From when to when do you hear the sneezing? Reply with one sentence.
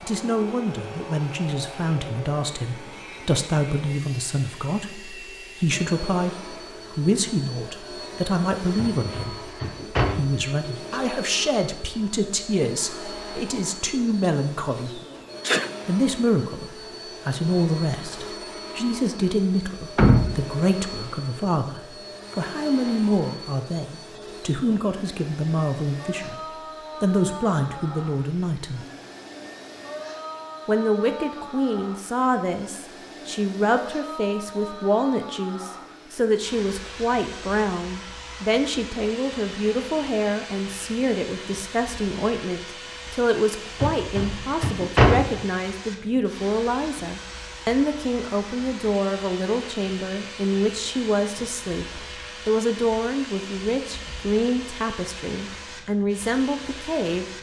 The sneezing can be heard from 15.0 to 15.8 s.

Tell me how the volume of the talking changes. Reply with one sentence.
The volume of the talking stays about the same.